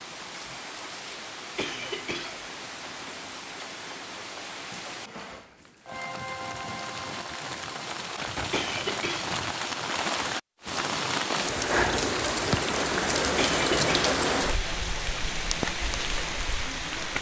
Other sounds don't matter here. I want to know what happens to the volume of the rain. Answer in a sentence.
The loudness of the rain goes up.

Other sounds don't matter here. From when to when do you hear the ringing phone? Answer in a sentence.
You can't hear the ringing phone here.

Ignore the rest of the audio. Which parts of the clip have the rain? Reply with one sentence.
The rain can be heard from 0.0 to 17.1 s.